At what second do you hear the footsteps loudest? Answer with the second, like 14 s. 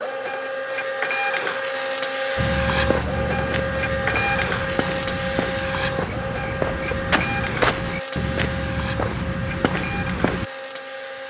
8 s.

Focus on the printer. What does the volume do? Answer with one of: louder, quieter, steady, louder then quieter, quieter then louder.
quieter.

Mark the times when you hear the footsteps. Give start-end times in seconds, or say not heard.
2.4-10.5.